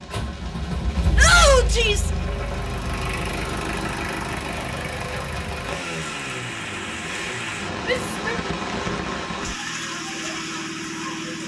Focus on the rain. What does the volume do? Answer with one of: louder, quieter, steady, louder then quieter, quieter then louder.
louder.